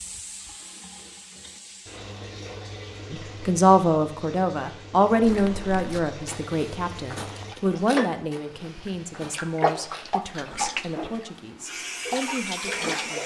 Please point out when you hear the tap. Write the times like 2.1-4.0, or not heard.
0.0-13.2.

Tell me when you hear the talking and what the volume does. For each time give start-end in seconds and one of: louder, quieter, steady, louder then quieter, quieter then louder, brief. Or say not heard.
3.1-13.2 quieter.